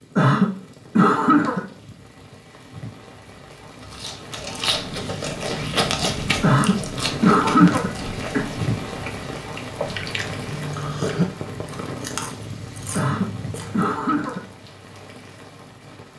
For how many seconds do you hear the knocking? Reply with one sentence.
You can hear the knocking for 2 seconds altogether.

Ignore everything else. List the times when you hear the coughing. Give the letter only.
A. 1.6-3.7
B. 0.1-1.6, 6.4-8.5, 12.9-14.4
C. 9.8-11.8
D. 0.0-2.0
B.